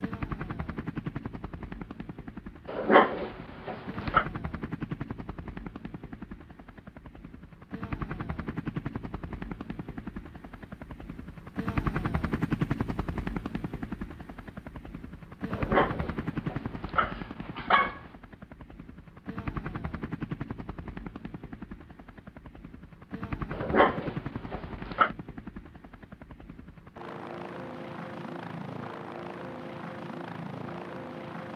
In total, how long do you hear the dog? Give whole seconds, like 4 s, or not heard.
6 s.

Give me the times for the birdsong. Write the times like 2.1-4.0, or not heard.
not heard.